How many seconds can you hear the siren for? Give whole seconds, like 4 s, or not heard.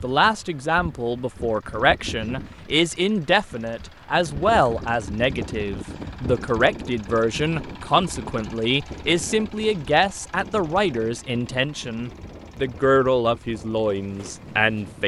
not heard.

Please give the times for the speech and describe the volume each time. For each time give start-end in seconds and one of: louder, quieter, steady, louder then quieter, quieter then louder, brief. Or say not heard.
0.0-15.0 steady.